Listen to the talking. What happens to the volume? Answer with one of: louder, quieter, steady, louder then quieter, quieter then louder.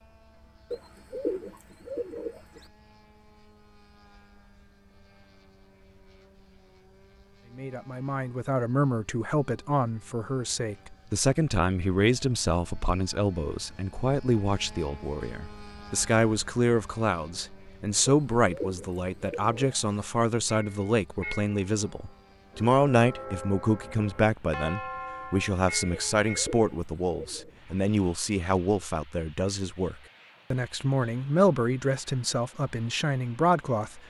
steady.